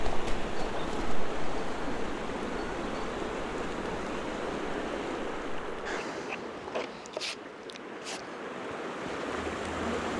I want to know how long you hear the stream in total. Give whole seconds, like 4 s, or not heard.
10 s.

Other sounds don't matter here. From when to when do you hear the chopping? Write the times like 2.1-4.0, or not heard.
not heard.